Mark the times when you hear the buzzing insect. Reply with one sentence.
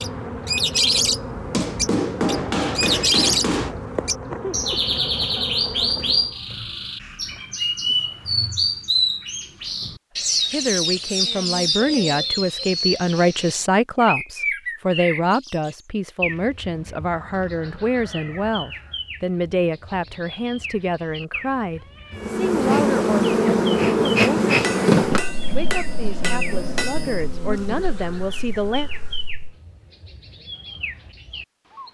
The buzzing insect can be heard from 0.0 to 6.4 s and from 22.1 to 29.5 s.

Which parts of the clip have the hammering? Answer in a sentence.
You can hear the hammering from 1.5 to 3.8 s and from 24.4 to 27.3 s.